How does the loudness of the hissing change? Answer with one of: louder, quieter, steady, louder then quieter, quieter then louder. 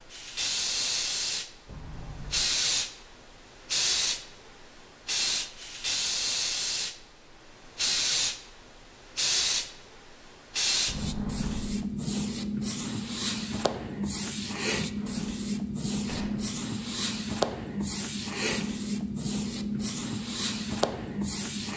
steady.